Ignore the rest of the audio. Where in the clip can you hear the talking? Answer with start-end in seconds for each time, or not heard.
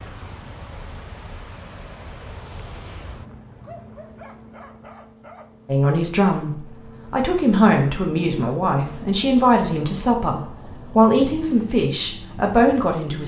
5.7-13.2.